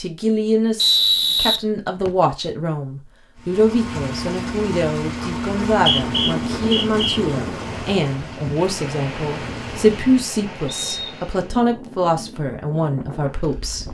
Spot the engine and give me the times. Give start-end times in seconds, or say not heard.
3.4-10.1.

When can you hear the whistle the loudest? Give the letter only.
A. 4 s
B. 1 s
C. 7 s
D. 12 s
B.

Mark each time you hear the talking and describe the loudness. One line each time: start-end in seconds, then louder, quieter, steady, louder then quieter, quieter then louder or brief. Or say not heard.
0.0-13.9 steady.